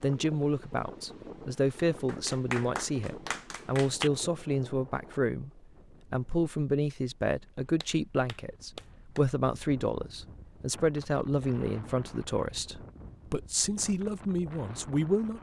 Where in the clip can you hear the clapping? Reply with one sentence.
The clapping can be heard from 2.0 to 4.1 s and from 7.8 to 9.2 s.